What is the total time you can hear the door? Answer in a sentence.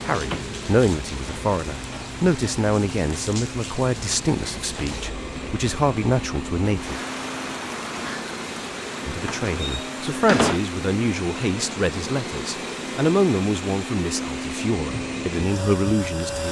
You can hear the door for 2 seconds altogether.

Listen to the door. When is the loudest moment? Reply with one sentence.
The volume of the door peaks at 10 seconds.